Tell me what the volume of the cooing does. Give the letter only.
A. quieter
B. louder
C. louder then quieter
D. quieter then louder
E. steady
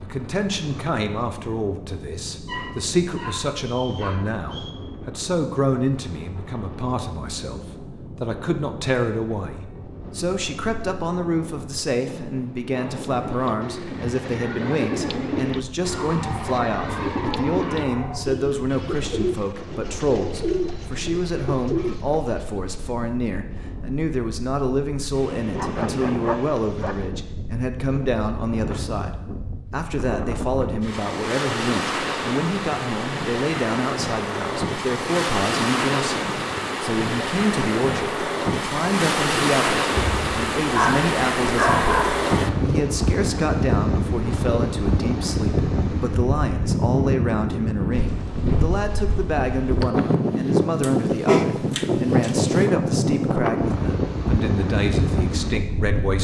E.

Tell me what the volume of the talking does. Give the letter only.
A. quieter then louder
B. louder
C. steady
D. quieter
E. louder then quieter
C.